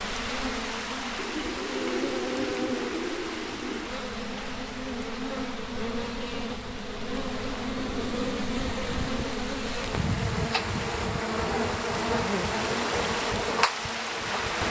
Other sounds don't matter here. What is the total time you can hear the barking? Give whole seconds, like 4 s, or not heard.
not heard.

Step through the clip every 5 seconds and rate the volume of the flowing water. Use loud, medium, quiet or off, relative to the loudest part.
loud, medium, loud.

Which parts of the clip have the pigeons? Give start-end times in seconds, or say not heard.
1.1-3.9, 7.8-9.3.